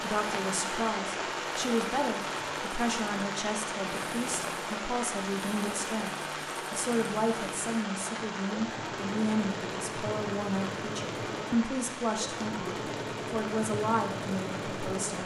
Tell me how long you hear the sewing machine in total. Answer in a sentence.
The sewing machine can be heard for 15 seconds in total.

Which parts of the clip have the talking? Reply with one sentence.
The talking can be heard from 0.0 to 15.2 s.